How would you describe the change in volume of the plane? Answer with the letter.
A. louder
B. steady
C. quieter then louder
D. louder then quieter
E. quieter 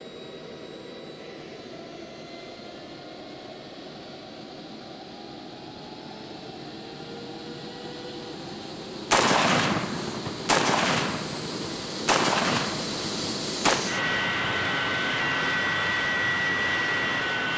A.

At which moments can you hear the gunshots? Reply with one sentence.
You can hear the gunshots from 9.1 to 13.9 s.